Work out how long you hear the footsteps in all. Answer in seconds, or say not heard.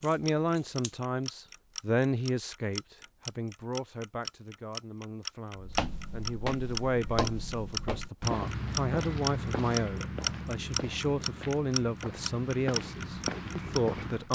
9 s.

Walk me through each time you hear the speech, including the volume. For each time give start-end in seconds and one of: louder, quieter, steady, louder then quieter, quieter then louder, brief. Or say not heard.
0.0-14.2 quieter then louder.